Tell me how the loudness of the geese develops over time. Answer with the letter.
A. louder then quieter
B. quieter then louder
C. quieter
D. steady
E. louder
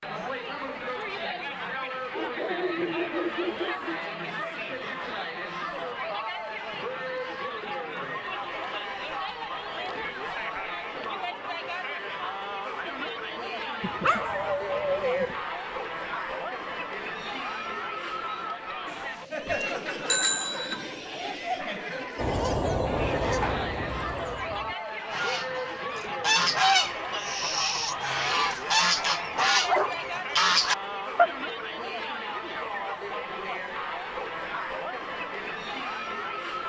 B.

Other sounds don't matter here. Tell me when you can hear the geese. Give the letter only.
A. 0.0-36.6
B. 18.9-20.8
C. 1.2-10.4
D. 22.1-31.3
D.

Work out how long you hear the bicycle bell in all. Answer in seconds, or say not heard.
2 s.